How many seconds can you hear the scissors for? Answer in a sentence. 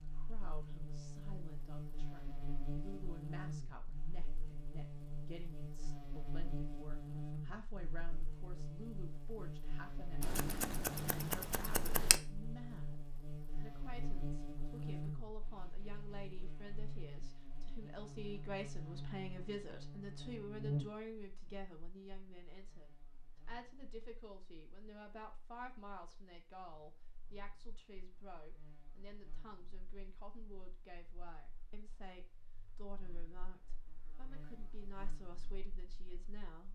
The scissors can be heard for 2 seconds in total.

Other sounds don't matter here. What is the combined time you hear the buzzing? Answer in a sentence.
The buzzing can be heard for 37 seconds in total.